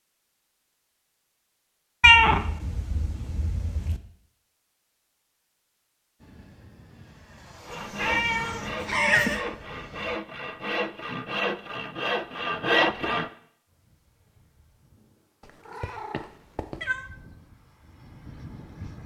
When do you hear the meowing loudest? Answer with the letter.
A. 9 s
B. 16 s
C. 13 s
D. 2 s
D.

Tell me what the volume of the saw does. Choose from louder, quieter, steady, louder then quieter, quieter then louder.
louder.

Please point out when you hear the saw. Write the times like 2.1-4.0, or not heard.
7.7-13.3.